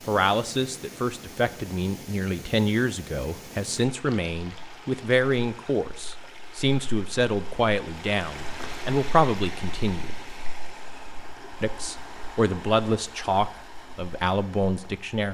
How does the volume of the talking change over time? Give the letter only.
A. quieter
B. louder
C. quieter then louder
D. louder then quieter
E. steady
E.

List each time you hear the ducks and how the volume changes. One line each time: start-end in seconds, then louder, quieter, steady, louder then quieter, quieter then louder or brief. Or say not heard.
not heard.